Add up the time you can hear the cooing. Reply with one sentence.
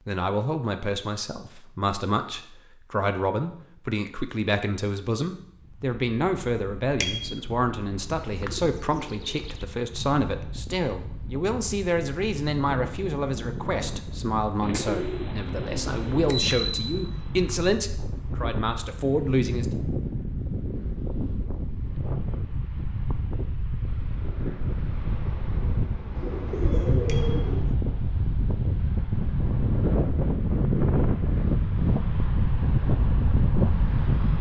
The cooing can be heard for 5 seconds in total.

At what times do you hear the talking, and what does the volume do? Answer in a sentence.
You can hear the talking from 0.1 to 19.6 s, at a steady volume.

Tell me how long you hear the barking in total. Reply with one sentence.
You can't hear the barking here.